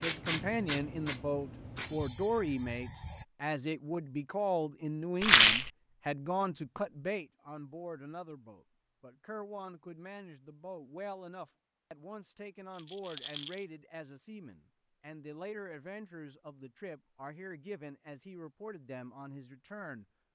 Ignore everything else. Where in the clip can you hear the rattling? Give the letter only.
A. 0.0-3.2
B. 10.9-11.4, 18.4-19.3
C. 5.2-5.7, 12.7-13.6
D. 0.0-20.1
C.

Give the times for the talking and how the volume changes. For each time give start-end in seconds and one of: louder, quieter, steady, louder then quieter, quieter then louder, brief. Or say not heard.
0.0-20.1 quieter.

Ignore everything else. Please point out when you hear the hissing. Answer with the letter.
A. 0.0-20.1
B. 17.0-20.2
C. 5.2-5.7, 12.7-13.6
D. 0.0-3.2
D.